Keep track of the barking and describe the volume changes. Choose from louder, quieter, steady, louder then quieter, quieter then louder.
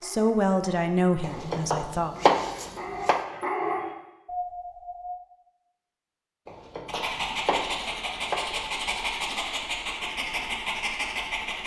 louder.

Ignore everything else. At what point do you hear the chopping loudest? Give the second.
2 s.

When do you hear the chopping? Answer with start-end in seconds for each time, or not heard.
1.2-3.2, 6.5-8.4.